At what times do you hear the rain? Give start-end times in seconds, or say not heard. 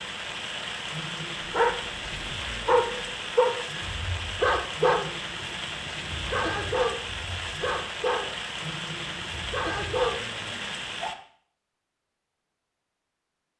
0.0-11.2.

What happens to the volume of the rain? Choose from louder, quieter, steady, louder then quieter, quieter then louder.
steady.